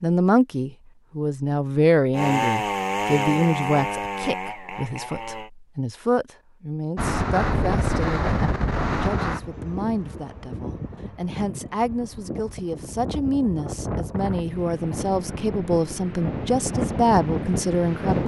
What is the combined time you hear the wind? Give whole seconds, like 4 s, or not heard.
11 s.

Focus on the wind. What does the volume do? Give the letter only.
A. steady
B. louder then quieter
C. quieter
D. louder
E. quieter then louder
E.